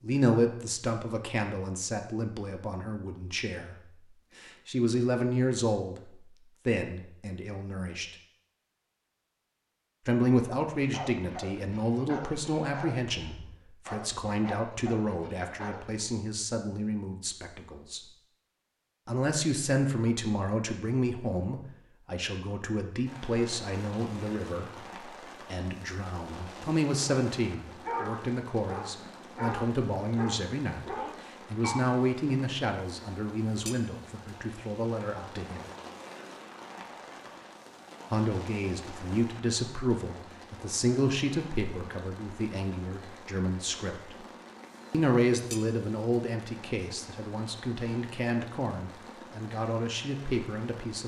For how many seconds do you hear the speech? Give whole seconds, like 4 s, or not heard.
45 s.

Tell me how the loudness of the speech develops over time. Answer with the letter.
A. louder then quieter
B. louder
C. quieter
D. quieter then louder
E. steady
E.